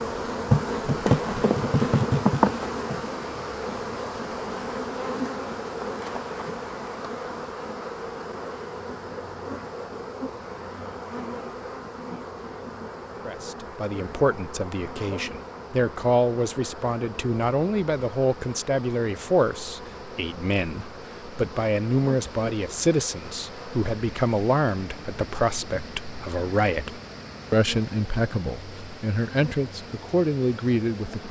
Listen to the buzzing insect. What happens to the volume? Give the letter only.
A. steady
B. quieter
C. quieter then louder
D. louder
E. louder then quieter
B.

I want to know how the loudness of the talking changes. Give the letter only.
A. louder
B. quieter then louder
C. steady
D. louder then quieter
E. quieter
C.